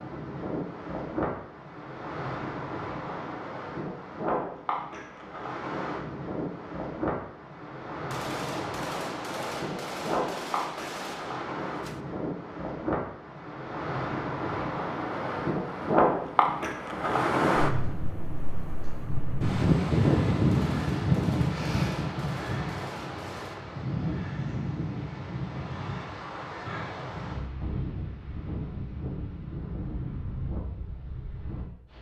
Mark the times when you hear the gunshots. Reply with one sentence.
You can hear the gunshots from 8.1 to 12.0 s and from 20.5 to 23.6 s.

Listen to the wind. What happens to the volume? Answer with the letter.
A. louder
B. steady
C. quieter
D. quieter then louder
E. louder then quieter
E.